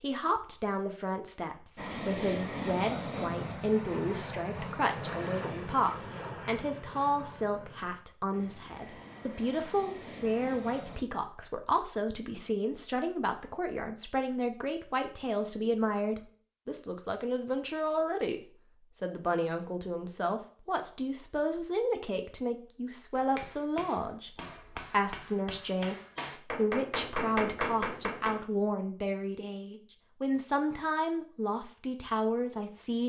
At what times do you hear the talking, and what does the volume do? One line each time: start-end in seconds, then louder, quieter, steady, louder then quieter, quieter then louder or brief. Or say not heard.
0.0-33.0 steady.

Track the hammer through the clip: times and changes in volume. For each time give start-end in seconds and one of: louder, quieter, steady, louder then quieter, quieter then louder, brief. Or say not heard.
23.1-28.4 louder.